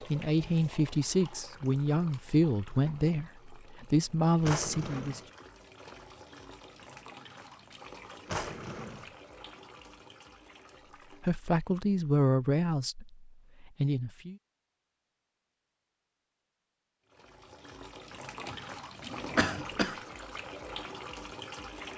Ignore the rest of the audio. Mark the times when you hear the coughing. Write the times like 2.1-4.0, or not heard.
19.4-19.9.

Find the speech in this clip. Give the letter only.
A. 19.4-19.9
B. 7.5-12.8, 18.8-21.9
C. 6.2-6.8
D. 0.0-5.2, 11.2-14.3
D.